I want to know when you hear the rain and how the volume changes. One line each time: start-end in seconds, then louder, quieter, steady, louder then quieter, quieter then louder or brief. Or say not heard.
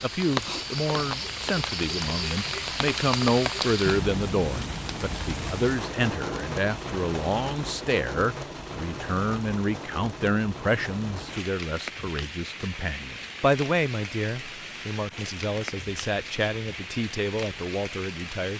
0.0-18.5 quieter.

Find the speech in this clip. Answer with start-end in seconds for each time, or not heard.
0.0-18.5.